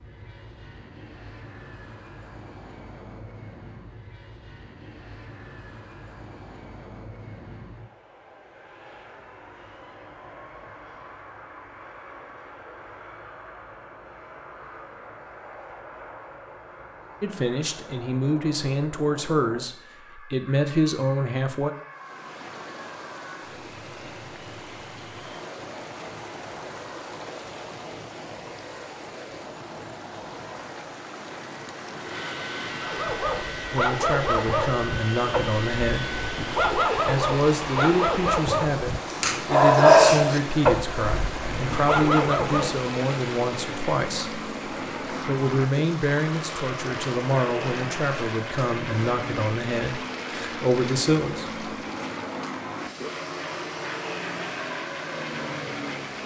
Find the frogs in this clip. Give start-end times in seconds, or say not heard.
not heard.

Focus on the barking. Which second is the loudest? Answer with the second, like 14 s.
40 s.